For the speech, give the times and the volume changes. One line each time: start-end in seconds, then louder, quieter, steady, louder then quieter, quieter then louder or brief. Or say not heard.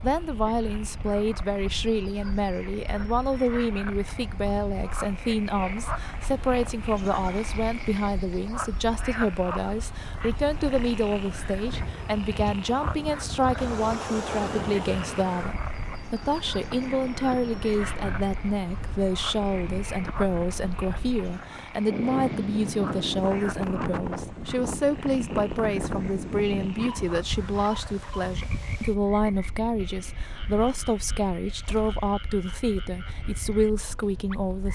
0.0-34.7 steady.